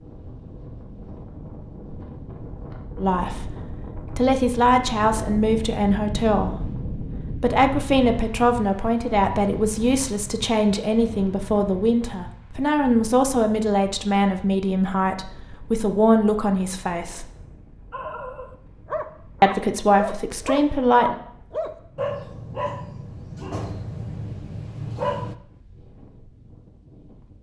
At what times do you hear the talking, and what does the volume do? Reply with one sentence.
You can hear the talking from 3.0 to 17.2 s, at a steady volume; and briefly from 19.4 to 21.1 s.